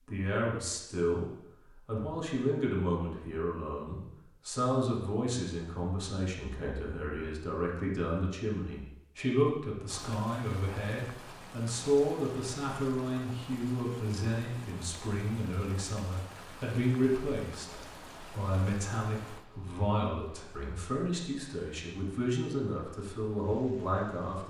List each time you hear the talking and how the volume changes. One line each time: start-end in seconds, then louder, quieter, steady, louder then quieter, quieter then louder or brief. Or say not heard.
0.1-24.4 steady.